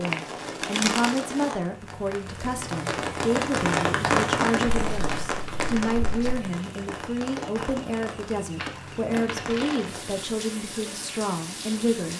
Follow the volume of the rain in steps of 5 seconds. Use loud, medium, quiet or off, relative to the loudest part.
loud, medium, medium.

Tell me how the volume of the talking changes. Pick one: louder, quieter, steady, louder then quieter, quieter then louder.
steady.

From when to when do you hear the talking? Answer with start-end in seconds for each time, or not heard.
0.0-12.1.